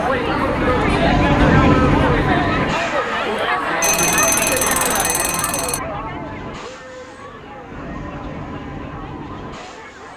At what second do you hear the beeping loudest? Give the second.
4 s.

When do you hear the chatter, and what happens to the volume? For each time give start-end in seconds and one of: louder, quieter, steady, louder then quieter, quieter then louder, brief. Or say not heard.
0.0-10.1 quieter.